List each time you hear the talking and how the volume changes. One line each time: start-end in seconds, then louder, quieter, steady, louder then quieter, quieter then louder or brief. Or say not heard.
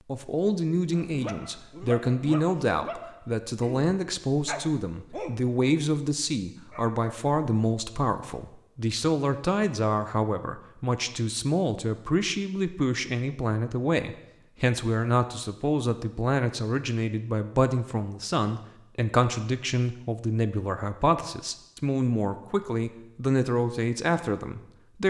0.1-25.0 steady.